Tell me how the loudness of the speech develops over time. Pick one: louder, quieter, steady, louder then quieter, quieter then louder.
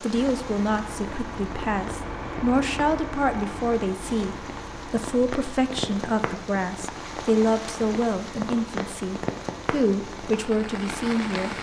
steady.